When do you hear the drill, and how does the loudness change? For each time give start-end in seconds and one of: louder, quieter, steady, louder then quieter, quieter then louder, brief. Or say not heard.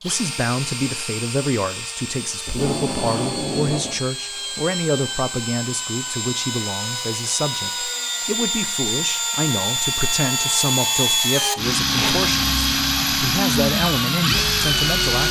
0.0-15.2 louder.